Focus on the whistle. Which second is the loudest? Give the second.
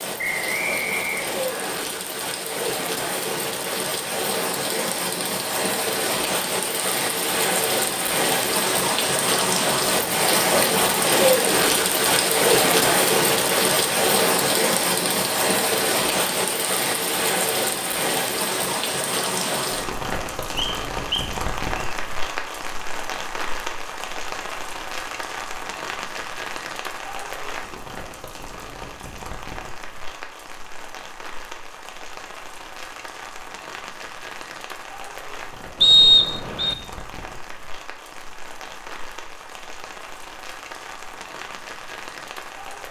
36 s.